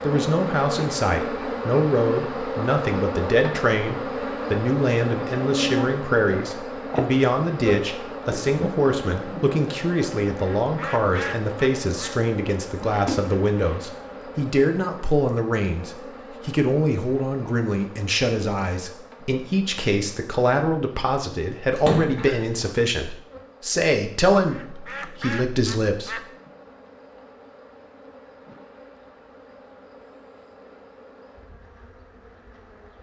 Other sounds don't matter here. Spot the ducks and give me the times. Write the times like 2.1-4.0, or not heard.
10.4-12.2, 24.4-26.3.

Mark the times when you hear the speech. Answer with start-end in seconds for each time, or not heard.
0.0-26.2.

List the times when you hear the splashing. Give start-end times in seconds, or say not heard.
12.9-14.3, 21.8-22.8.